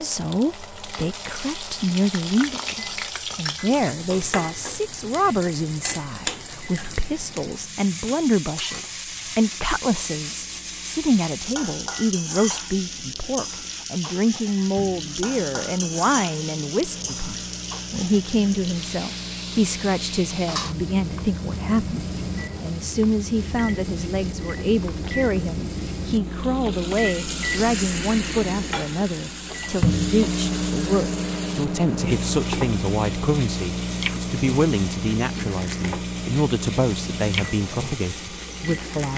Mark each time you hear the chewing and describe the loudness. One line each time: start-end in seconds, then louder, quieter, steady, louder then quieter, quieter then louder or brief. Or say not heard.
not heard.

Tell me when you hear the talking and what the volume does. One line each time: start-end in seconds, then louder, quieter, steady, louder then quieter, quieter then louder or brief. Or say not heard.
0.0-39.1 steady.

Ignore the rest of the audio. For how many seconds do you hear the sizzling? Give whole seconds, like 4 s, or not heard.
39 s.